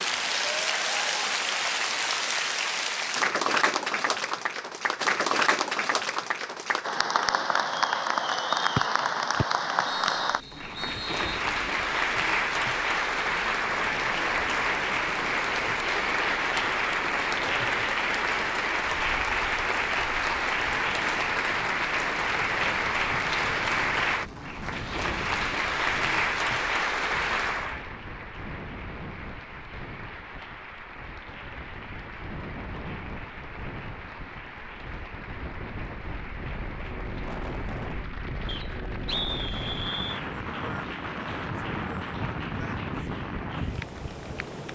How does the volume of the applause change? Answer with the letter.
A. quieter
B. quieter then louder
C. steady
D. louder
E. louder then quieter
A.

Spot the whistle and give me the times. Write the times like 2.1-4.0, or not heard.
8.8-11.4, 38.5-40.2.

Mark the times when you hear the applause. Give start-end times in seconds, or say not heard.
0.0-44.6.